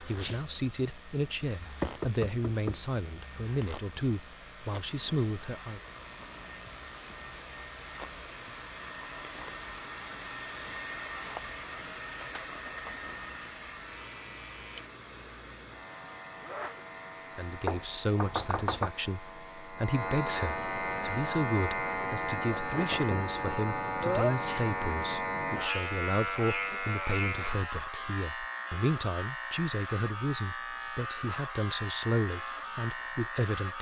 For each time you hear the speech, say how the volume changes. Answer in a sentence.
The speech can be heard from 0.0 to 5.8 s, at a steady volume; and from 17.4 to 33.7 s, at a steady volume.